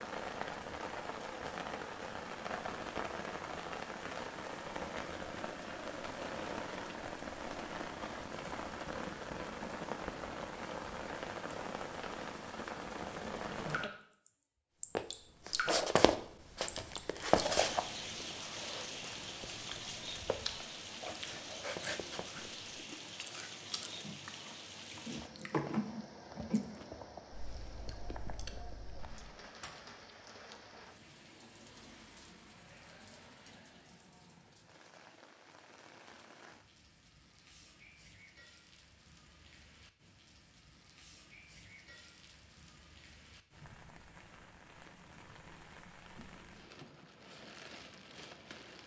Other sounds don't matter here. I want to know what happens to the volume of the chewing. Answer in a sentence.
The volume of the chewing goes up, then down.